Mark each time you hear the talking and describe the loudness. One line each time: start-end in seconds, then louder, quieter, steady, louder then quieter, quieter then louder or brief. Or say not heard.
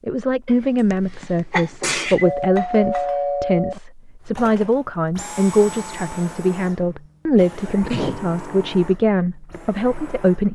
0.1-10.5 steady.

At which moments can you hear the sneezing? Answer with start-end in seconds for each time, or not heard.
0.5-2.5, 7.3-8.2.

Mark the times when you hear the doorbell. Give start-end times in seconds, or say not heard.
2.2-3.8.